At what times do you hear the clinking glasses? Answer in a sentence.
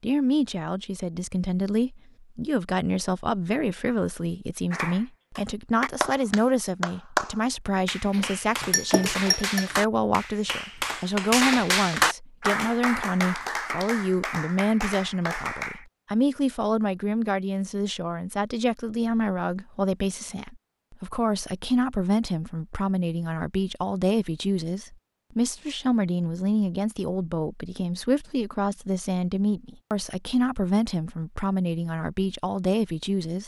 The clinking glasses can be heard from 8.1 to 9.7 s.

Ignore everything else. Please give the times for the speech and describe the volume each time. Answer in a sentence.
You can hear the speech from 0.0 to 33.4 s, at a steady volume.